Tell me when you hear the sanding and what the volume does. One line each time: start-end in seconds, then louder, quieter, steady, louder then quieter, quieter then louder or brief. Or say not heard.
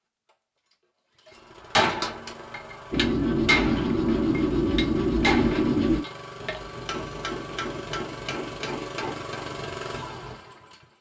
2.9-10.6 quieter.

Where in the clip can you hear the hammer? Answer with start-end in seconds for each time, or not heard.
1.6-9.6.